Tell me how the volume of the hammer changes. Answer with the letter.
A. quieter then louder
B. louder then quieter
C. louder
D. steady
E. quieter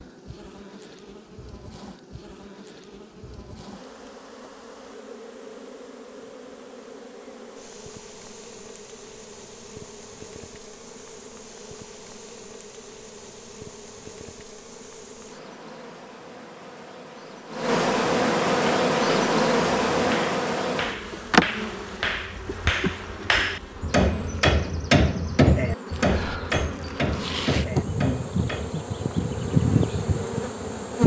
B.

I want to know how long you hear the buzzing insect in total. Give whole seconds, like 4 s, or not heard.
31 s.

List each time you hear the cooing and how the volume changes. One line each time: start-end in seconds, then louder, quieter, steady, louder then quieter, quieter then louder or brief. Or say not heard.
not heard.